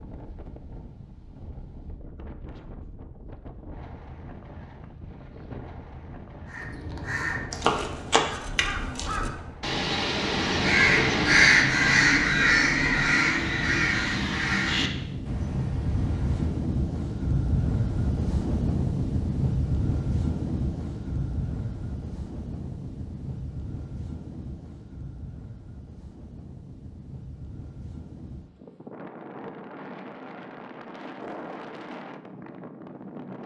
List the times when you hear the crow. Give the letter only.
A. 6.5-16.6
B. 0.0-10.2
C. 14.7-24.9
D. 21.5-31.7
A.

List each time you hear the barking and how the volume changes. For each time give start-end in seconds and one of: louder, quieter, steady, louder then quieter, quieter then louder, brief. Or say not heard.
not heard.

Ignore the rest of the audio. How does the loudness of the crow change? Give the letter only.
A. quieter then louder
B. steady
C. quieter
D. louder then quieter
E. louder
D.